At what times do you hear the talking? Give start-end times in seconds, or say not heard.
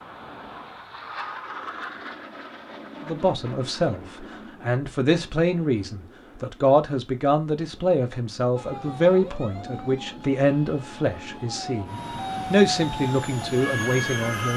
3.0-14.5.